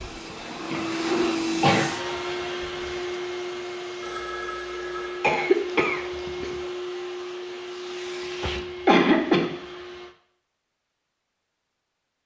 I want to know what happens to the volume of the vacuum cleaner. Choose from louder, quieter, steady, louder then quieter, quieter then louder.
quieter.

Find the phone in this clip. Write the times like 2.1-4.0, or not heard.
4.0-5.3.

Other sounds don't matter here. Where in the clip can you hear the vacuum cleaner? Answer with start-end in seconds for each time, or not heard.
0.0-10.2.